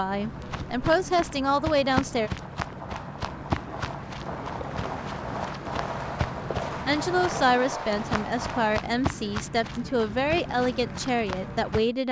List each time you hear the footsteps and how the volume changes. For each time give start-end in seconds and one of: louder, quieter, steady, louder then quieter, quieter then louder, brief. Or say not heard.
0.0-11.9 steady.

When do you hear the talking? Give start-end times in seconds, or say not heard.
0.0-2.3, 6.8-12.0.